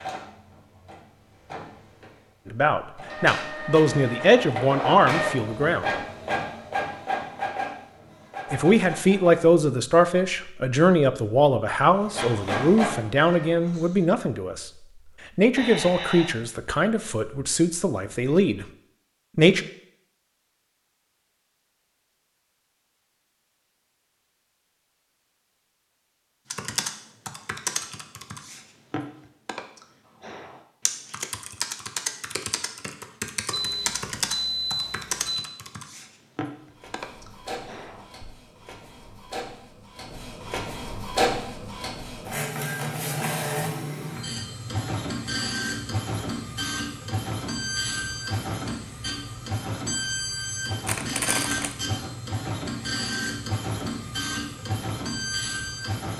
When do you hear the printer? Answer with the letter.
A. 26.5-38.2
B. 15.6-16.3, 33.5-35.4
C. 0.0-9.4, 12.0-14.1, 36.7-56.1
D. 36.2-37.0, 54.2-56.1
C.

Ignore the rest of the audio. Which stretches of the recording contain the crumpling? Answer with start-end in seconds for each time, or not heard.
50.9-51.8.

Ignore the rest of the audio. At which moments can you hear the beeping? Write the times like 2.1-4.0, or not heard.
15.6-16.3, 33.5-35.4.